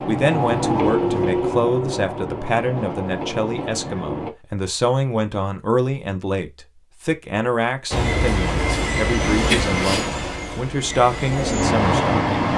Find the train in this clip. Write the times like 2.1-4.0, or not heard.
0.0-4.3, 7.9-12.5.